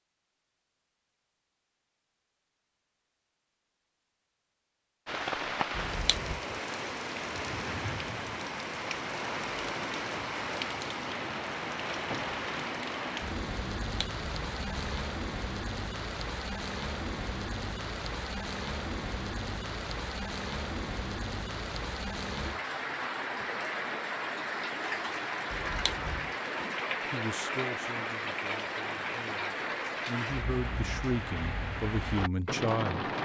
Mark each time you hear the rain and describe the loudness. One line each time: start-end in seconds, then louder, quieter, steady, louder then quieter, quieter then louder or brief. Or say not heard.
5.0-33.1 steady.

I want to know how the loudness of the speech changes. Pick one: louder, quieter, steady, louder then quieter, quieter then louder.
quieter then louder.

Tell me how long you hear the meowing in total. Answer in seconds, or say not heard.
3 s.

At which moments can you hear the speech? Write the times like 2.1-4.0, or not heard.
27.1-33.0.